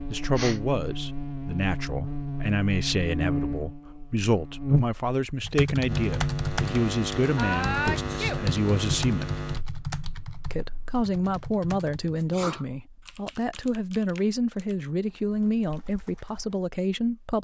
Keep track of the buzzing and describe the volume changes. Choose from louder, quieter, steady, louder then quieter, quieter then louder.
louder then quieter.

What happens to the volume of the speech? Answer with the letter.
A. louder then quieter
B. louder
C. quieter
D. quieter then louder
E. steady
E.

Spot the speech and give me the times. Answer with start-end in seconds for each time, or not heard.
0.1-9.3, 10.4-17.4.